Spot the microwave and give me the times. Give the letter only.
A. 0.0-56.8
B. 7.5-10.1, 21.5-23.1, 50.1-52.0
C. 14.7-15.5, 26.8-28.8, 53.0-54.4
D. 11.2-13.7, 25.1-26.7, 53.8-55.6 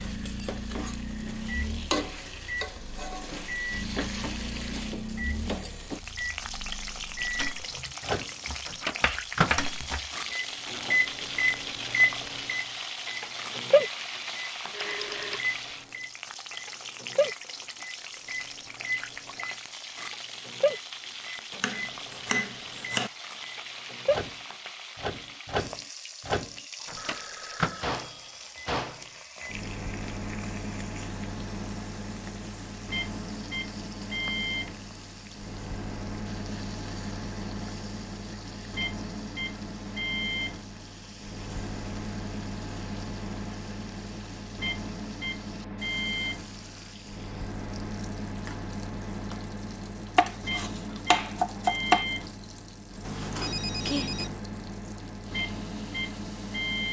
A.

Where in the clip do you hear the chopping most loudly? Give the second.
52 s.